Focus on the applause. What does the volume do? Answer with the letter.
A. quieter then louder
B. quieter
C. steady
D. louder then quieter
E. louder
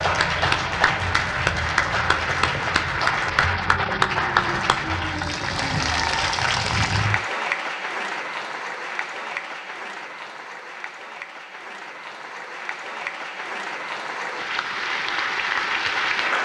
A.